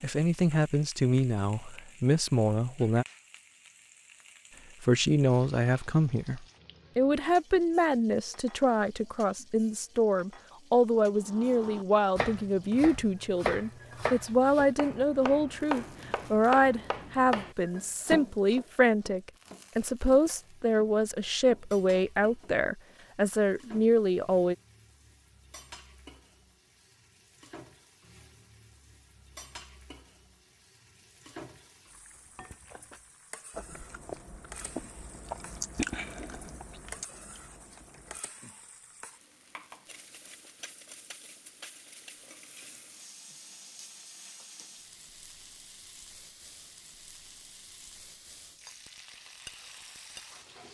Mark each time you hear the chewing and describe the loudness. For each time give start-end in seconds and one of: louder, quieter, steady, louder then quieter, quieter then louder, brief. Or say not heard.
32.1-38.2 louder then quieter.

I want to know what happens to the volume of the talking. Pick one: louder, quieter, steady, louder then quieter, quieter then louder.
steady.